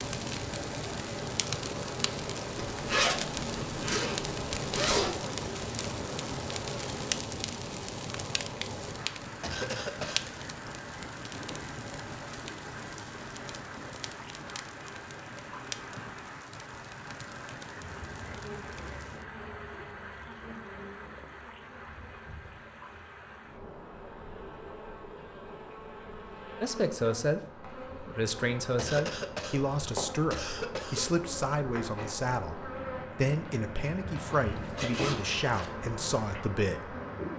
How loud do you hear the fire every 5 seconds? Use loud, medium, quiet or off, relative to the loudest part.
loud, loud, medium, medium, off, off, off, off.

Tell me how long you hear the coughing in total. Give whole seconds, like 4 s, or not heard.
3 s.